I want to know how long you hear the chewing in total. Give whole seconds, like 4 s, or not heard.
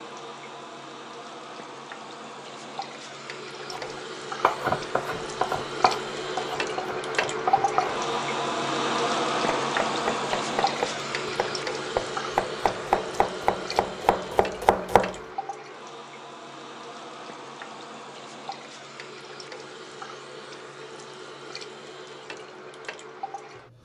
not heard.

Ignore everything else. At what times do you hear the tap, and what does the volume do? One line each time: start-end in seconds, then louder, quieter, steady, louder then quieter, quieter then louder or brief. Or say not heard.
0.0-23.7 louder then quieter.